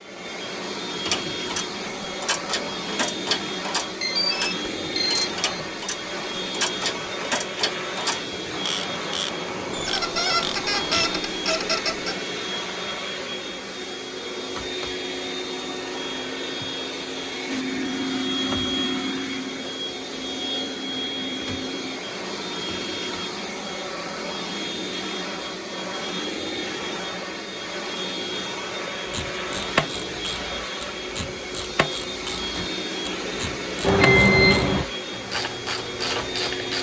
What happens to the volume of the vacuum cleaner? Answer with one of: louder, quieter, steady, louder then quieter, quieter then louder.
steady.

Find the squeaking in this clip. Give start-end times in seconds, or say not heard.
9.7-12.2.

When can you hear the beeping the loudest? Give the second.
34 s.